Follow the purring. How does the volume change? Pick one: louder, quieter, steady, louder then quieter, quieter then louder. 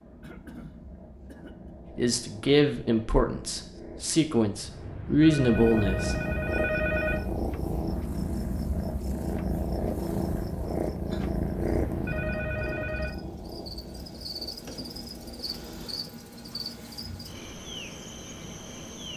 louder then quieter.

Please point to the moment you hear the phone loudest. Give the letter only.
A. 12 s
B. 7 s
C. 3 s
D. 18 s
B.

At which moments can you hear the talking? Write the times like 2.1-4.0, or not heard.
1.9-6.2.